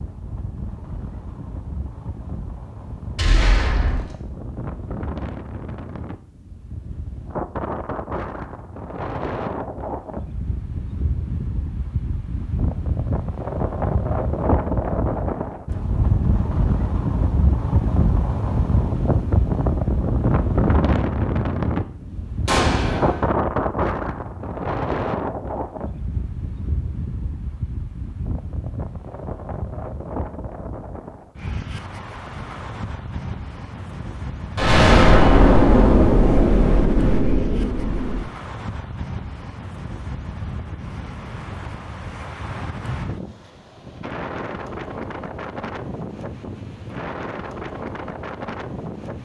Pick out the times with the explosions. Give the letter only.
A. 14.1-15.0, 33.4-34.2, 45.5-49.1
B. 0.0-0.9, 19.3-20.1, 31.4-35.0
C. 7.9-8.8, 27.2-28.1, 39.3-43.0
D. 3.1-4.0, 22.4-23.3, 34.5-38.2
D.